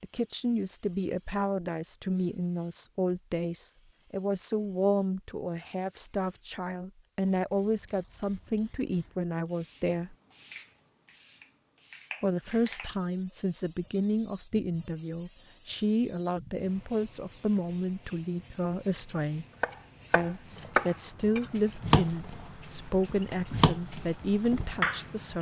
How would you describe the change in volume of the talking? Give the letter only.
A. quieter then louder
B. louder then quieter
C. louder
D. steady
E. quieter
D.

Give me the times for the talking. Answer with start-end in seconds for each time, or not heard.
0.0-10.2, 12.2-19.4, 20.1-25.3.